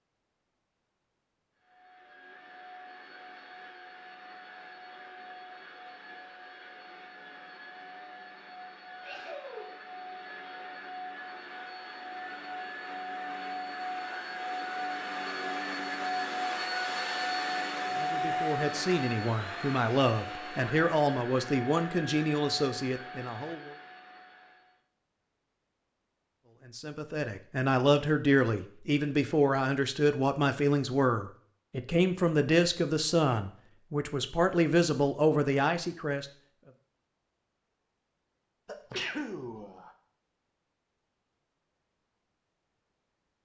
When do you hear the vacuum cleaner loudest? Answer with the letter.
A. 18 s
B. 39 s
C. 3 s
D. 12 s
A.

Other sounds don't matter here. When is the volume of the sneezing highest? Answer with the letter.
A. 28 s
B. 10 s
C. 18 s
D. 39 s
D.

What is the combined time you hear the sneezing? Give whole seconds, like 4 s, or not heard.
2 s.